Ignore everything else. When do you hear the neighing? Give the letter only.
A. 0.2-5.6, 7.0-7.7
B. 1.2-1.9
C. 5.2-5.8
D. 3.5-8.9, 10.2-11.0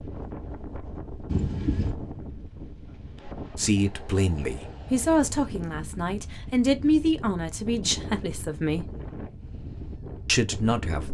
B.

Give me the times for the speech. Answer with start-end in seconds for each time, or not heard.
3.5-8.9, 10.2-11.0.